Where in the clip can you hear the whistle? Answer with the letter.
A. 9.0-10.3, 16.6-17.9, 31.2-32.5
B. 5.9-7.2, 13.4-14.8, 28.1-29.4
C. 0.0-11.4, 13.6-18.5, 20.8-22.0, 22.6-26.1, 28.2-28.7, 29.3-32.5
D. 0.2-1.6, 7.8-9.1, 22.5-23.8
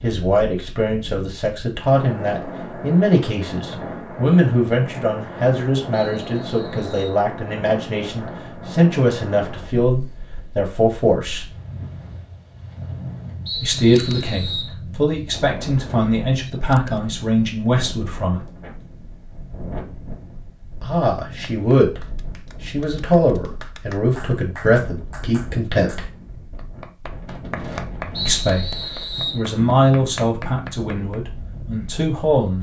B.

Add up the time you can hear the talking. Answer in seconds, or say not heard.
25 s.